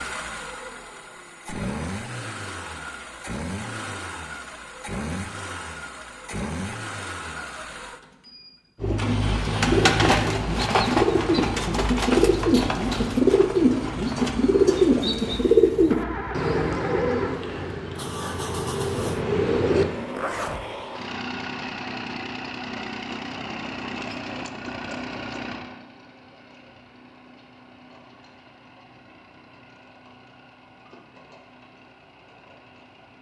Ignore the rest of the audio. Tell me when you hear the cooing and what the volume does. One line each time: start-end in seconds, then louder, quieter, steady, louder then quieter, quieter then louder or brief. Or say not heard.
8.8-19.9 quieter.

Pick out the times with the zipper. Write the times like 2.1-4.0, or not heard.
20.1-20.6.